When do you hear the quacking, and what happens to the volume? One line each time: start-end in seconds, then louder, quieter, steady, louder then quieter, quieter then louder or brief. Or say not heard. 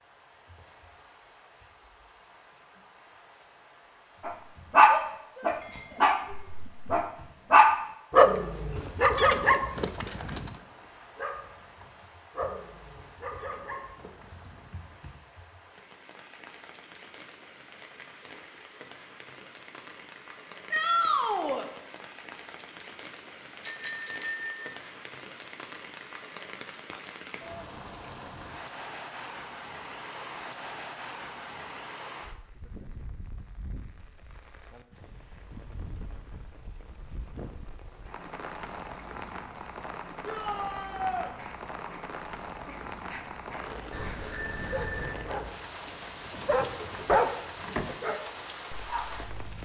not heard.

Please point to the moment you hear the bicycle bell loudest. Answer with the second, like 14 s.
24 s.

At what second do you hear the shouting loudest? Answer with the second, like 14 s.
21 s.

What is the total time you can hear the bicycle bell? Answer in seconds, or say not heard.
3 s.